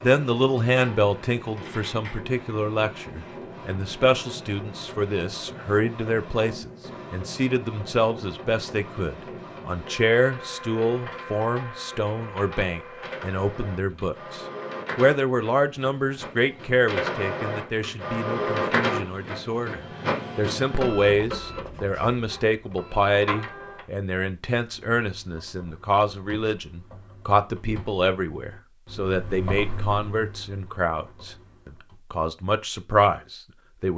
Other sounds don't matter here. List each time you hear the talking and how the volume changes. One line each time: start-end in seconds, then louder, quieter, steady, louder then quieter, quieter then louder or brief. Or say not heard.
0.0-33.9 steady.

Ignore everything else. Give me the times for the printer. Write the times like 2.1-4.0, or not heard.
0.0-23.9.